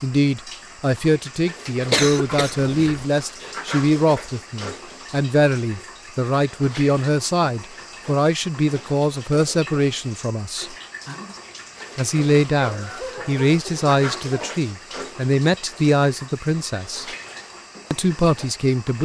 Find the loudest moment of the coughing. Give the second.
2 s.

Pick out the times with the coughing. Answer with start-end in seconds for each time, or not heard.
1.9-3.0, 12.6-14.6.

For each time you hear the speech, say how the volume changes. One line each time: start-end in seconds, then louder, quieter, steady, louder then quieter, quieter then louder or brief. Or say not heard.
0.0-10.8 steady
11.9-17.1 quieter then louder
17.9-18.9 brief.